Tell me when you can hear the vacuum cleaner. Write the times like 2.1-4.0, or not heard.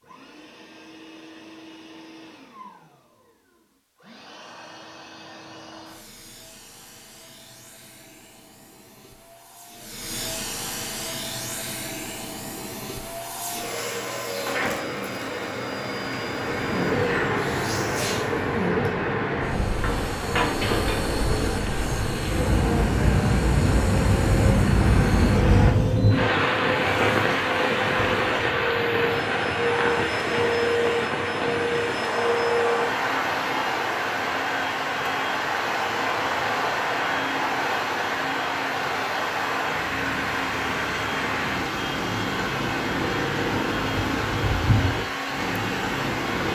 0.0-46.5.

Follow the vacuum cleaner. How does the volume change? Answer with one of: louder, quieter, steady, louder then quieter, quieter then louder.
louder.